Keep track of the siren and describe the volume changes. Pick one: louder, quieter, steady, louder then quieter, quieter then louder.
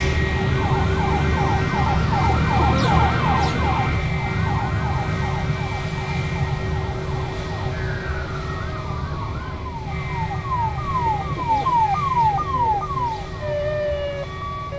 quieter then louder.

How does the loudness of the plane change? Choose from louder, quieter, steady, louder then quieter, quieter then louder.
quieter.